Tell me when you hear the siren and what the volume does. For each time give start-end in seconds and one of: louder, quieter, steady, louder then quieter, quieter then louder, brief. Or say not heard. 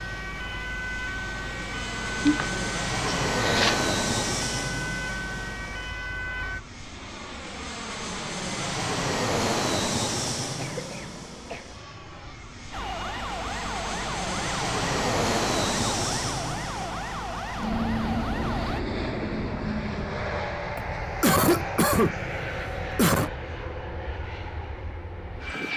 0.0-6.6 steady
12.7-18.9 steady.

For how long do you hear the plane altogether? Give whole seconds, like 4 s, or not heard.
26 s.